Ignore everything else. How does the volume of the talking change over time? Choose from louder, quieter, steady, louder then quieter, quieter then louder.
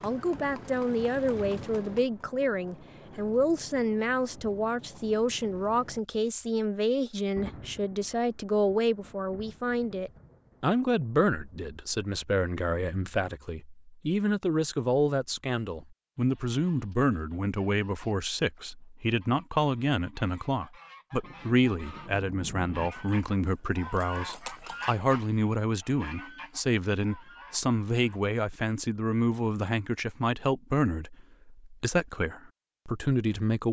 steady.